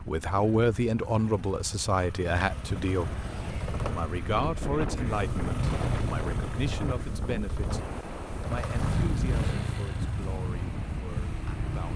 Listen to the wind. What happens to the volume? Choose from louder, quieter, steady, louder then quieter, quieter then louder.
steady.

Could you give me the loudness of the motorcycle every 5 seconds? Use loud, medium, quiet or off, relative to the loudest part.
medium, loud, medium.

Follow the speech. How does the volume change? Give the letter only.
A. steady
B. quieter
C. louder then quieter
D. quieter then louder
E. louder
B.